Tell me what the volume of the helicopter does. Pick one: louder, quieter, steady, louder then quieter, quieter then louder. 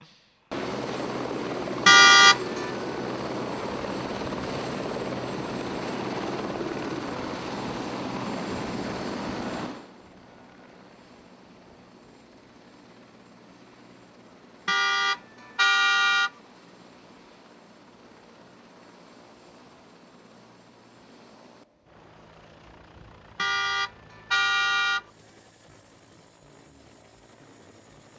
quieter.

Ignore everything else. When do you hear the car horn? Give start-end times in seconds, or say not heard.
1.9-2.6, 14.7-16.3, 23.4-25.0.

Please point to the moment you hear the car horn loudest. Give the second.
2 s.